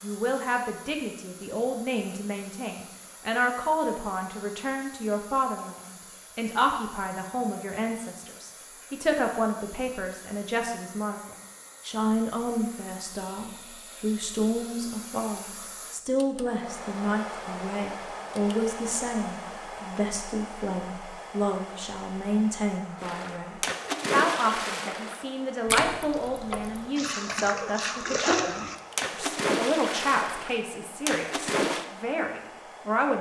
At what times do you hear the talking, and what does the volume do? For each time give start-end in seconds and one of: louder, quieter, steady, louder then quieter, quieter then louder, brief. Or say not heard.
0.0-33.1 steady.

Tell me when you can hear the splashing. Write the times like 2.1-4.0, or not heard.
23.0-31.9.